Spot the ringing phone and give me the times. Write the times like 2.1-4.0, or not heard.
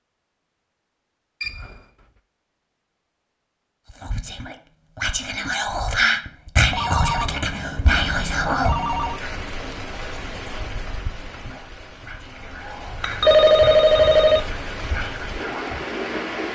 1.4-1.8, 6.7-9.2, 13.0-14.5.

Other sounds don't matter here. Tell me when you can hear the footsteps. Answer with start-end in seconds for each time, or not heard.
not heard.